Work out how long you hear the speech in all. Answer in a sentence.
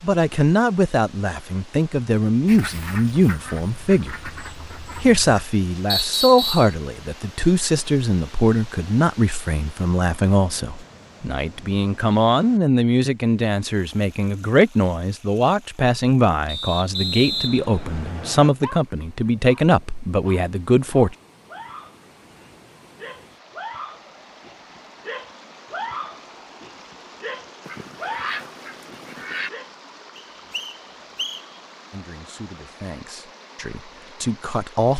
The speech can be heard for 24 seconds in total.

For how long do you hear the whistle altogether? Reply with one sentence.
You can hear the whistle for 4 seconds altogether.